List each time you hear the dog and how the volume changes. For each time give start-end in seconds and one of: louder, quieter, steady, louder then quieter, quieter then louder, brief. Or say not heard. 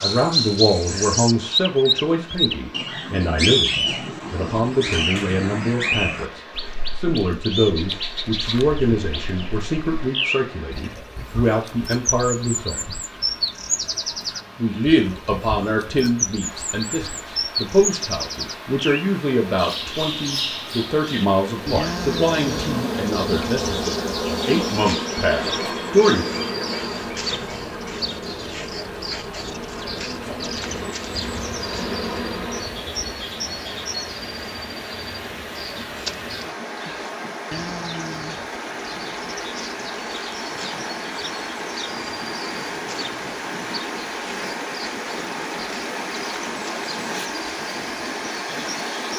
not heard.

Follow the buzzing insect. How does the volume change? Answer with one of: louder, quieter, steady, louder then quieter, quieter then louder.
quieter then louder.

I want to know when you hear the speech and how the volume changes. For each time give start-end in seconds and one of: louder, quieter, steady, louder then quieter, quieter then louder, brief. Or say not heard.
0.0-12.8 steady
14.6-26.2 steady.